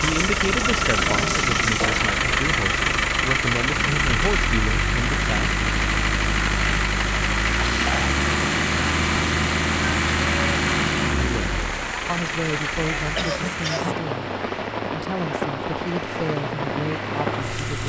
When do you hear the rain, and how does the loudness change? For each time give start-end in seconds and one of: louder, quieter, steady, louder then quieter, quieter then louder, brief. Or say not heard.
0.0-17.8 steady.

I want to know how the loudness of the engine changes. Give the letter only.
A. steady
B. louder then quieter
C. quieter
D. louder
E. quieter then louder
C.